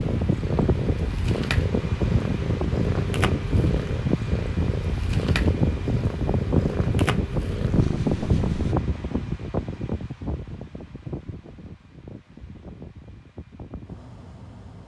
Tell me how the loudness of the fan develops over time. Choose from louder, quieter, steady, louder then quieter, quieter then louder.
quieter.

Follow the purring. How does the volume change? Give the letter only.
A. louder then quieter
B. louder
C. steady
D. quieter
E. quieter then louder
C.